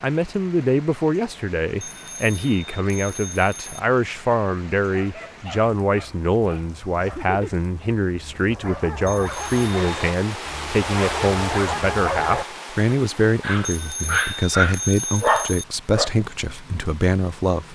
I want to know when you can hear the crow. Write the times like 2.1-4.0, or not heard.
not heard.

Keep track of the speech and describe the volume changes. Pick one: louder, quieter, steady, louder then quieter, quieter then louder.
steady.